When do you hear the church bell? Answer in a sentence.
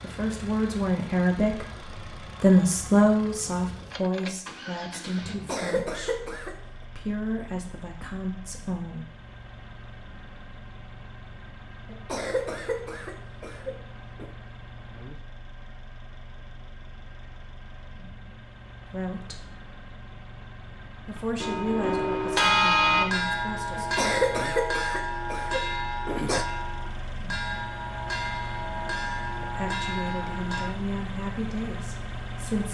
You can hear the church bell from 21.1 to 30.7 s.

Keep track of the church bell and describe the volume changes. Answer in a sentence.
The loudness of the church bell goes down.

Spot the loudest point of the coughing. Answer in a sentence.
The volume of the coughing peaks at 24 seconds.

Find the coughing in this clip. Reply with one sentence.
The coughing can be heard from 5.2 to 6.7 s, from 11.8 to 14.3 s and from 23.8 to 26.4 s.